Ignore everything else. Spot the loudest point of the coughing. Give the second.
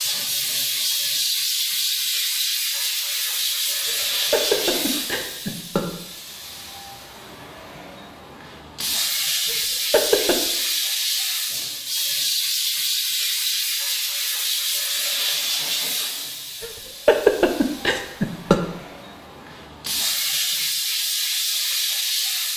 17 s.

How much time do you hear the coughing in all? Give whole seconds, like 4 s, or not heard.
5 s.